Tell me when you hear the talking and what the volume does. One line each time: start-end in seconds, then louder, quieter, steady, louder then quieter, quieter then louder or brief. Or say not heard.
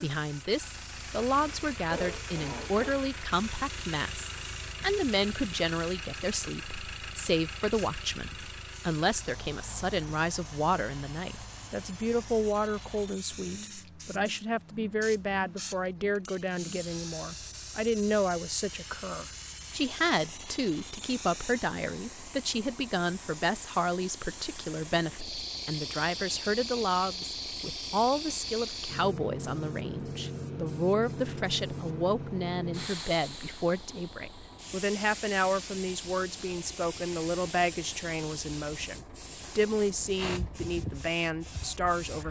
0.0-42.2 steady.